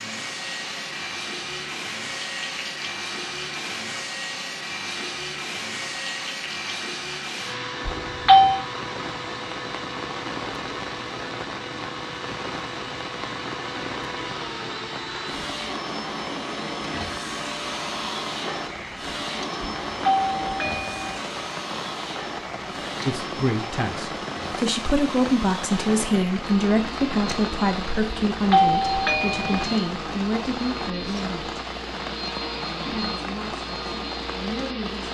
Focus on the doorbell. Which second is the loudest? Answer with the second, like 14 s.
8 s.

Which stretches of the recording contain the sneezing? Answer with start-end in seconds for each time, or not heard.
not heard.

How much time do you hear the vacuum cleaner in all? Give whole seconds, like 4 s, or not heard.
35 s.